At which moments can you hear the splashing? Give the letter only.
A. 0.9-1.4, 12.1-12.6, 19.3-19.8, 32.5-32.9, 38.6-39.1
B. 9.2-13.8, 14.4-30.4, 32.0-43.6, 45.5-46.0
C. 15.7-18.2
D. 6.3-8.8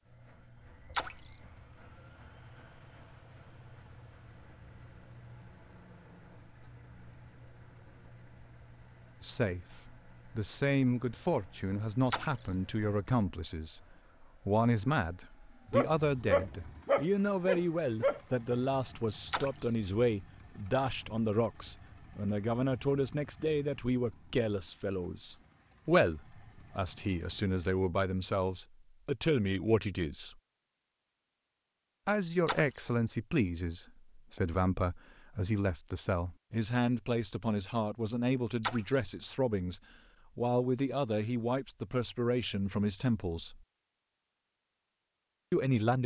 A.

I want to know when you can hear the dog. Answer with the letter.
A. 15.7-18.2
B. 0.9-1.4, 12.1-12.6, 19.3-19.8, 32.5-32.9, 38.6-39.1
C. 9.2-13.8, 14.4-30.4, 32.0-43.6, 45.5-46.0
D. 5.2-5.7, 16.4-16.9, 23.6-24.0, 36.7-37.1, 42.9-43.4
A.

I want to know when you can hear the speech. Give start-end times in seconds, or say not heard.
9.2-13.8, 14.4-30.4, 32.0-43.6, 45.5-46.0.